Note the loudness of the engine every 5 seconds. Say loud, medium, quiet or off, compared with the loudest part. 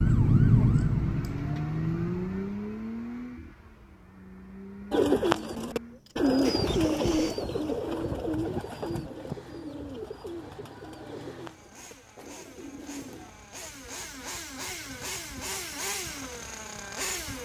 loud, medium, medium, loud.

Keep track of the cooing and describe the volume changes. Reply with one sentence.
The volume of the cooing goes down.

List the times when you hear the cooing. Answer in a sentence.
The cooing can be heard from 4.9 to 13.3 s.